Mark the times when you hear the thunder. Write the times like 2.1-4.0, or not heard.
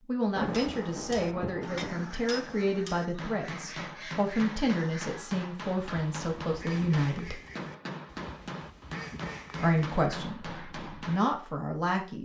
0.3-2.1.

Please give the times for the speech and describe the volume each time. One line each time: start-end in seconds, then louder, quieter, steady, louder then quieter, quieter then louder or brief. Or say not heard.
0.1-7.4 steady
9.6-12.2 brief.